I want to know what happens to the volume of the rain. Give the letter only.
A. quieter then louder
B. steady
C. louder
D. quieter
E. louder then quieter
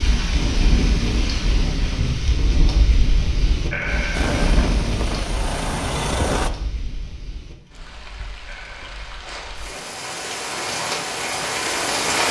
A.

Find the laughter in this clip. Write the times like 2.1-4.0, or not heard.
3.7-4.5, 8.4-9.1.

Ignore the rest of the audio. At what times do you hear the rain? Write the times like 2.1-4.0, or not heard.
0.0-12.2.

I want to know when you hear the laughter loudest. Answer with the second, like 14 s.
4 s.